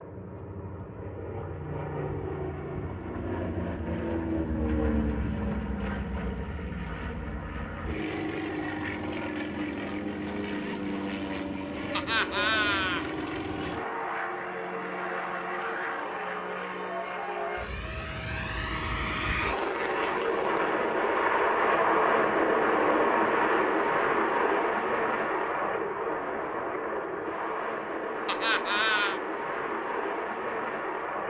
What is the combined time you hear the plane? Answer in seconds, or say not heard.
31 s.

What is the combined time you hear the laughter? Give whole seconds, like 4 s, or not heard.
2 s.